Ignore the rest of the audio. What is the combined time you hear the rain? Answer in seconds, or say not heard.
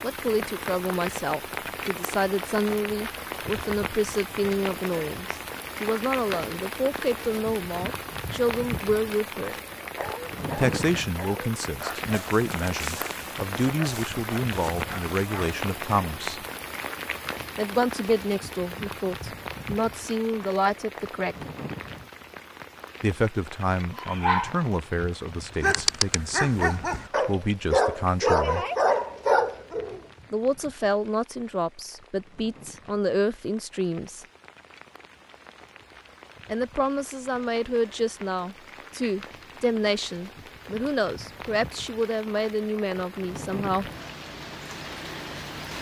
46 s.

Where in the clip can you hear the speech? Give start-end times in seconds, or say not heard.
0.0-9.6, 10.6-16.4, 17.6-21.4, 23.0-28.6, 30.3-34.2, 36.5-43.9.